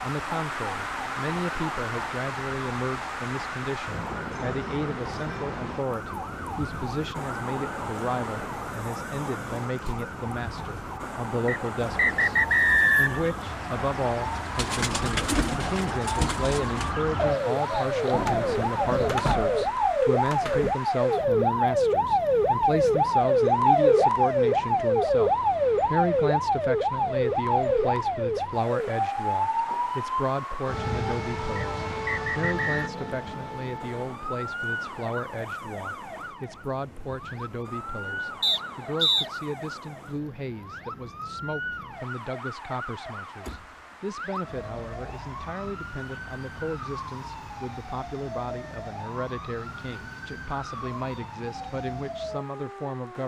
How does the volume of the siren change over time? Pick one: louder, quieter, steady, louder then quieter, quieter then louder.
louder then quieter.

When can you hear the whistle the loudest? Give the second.
13 s.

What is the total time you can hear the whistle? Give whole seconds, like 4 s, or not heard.
4 s.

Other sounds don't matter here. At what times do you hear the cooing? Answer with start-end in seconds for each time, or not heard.
14.2-19.6.